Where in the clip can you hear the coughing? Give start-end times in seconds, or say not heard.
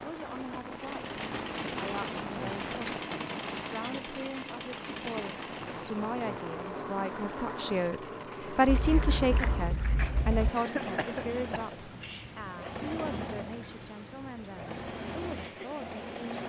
10.6-12.3.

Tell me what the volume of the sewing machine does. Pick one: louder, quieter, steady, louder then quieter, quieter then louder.
steady.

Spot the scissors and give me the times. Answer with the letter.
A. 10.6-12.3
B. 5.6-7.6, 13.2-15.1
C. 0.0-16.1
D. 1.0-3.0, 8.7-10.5
D.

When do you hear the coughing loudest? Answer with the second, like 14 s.
11 s.